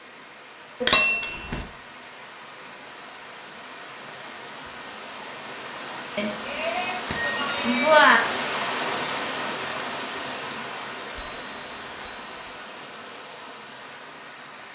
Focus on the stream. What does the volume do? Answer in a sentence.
The volume of the stream goes up, then down.